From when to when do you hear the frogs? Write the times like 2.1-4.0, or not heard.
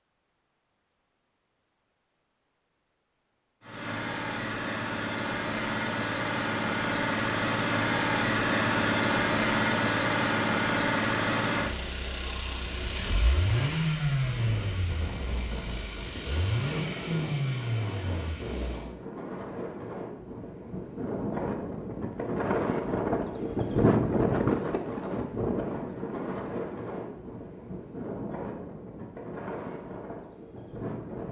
not heard.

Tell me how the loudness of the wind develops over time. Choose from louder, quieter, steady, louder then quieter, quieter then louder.
louder then quieter.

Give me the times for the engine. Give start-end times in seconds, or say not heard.
3.6-18.9.